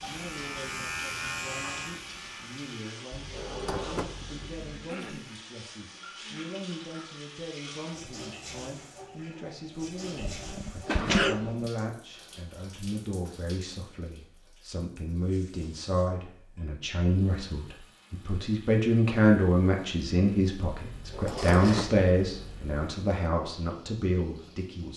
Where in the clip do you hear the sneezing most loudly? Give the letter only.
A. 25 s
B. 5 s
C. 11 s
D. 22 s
C.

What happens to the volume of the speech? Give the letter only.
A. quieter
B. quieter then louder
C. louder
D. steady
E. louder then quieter
C.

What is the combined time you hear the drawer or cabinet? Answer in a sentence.
You can hear the drawer or cabinet for 4 seconds altogether.